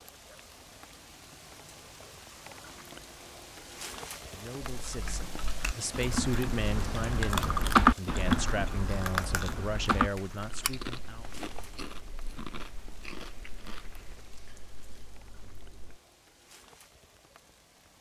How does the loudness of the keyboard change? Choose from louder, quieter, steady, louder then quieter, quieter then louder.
louder then quieter.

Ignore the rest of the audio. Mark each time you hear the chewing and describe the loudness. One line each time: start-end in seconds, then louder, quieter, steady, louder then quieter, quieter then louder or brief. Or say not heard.
5.6-14.2 quieter.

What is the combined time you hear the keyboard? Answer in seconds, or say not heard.
11 s.